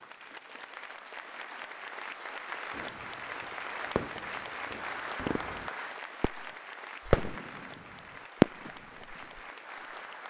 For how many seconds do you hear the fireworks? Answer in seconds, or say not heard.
5 s.